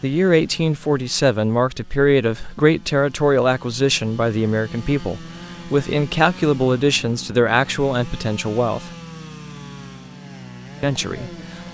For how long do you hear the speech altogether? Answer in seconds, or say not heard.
10 s.